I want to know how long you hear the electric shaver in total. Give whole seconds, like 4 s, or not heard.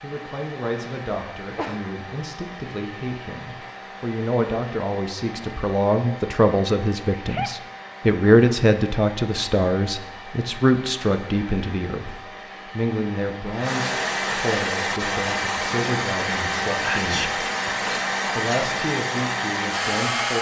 not heard.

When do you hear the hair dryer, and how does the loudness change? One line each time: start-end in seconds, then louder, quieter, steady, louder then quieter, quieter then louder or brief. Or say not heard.
0.0-20.3 louder.